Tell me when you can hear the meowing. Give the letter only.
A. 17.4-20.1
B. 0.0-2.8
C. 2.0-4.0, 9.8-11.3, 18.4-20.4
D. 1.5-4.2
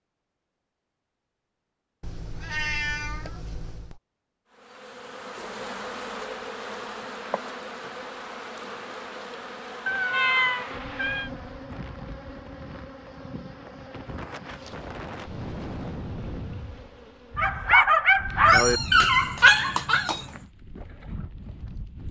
C.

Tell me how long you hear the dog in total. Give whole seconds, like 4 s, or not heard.
3 s.